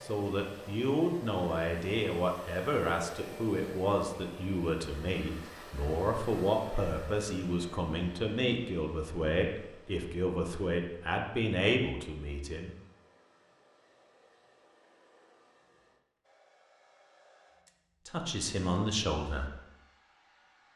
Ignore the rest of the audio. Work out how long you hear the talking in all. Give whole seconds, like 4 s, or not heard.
14 s.